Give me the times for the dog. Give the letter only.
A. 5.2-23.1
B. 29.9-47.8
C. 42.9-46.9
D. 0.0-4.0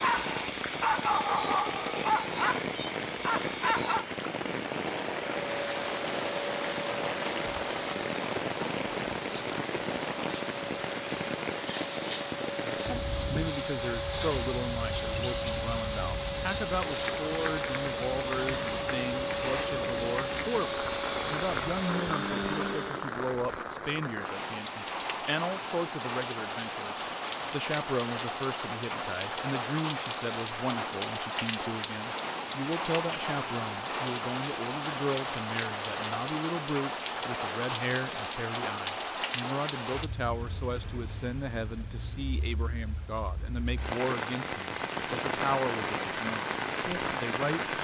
D.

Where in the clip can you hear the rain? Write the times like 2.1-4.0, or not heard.
0.0-47.8.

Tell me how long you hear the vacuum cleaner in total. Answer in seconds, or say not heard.
18 s.